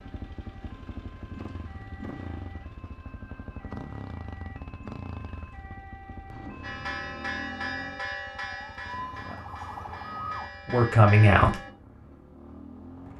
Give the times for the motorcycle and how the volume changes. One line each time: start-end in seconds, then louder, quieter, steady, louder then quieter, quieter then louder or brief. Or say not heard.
0.0-13.1 quieter.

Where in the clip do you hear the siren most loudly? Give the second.
10 s.